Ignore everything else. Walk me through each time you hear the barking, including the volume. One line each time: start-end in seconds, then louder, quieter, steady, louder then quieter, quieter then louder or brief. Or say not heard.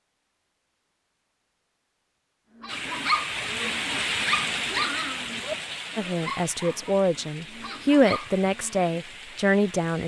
2.5-8.9 quieter.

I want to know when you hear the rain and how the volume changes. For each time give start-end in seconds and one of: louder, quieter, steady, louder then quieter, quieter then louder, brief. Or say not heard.
2.6-10.0 quieter.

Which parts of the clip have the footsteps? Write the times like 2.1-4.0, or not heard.
not heard.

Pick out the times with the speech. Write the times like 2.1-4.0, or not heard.
6.0-10.0.